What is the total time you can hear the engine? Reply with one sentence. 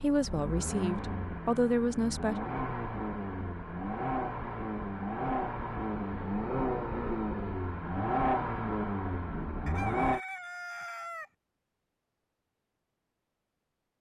You can hear the engine for 10 seconds altogether.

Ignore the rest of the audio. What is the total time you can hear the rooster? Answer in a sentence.
The rooster can be heard for 2 seconds in total.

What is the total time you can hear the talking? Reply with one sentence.
You can hear the talking for 2 seconds altogether.